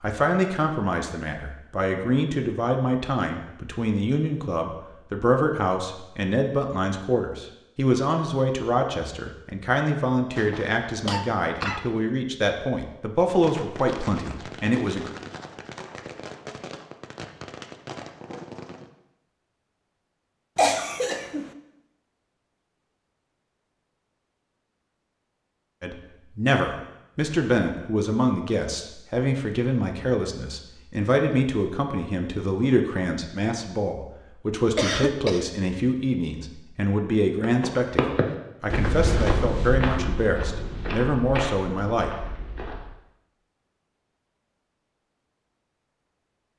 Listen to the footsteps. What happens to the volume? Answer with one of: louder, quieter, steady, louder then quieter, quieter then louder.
quieter.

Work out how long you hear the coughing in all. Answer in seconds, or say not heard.
3 s.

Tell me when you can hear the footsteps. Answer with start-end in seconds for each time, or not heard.
37.4-42.9.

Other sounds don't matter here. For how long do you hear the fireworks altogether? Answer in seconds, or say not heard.
6 s.